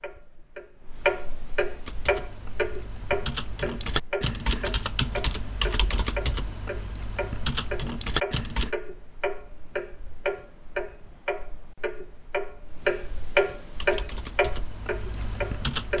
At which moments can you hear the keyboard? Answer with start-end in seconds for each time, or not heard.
1.9-8.8, 13.7-15.9.